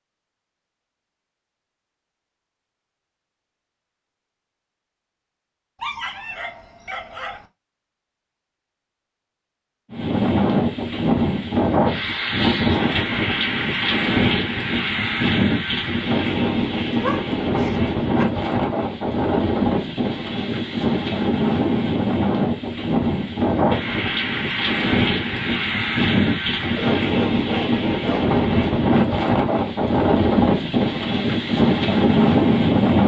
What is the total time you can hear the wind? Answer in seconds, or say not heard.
23 s.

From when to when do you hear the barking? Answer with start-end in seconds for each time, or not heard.
5.8-7.5, 16.9-18.2, 26.6-28.3.